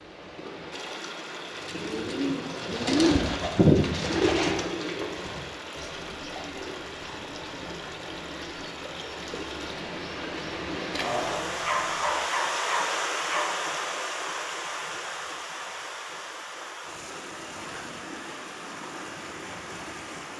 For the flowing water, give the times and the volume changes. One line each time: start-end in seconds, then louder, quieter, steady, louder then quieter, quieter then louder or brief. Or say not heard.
0.0-20.3 louder then quieter.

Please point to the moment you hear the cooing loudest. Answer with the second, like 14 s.
4 s.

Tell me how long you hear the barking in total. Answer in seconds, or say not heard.
2 s.